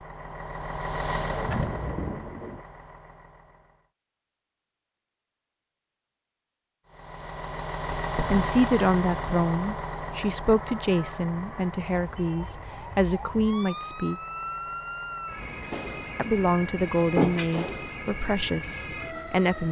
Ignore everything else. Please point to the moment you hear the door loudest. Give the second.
17 s.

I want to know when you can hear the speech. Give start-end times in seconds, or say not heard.
8.3-14.2, 16.1-19.6.